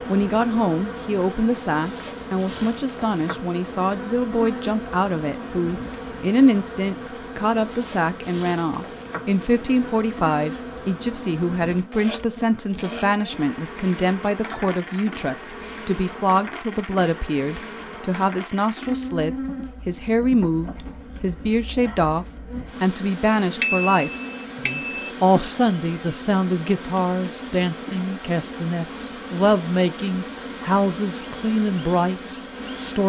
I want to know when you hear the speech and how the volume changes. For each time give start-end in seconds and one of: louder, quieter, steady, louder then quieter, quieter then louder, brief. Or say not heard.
0.1-33.0 steady.